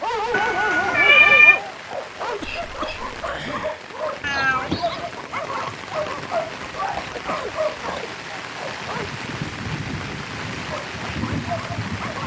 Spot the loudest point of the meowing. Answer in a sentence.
The volume of the meowing peaks at 1 second.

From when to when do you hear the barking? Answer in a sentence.
You can hear the barking from 0.0 to 9.1 s and from 10.7 to 12.2 s.